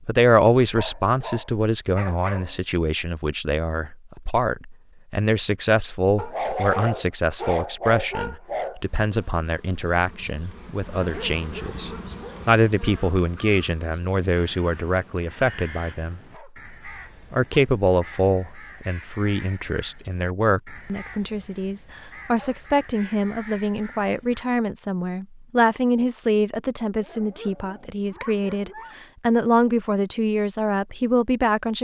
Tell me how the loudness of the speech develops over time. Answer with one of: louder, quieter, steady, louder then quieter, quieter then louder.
steady.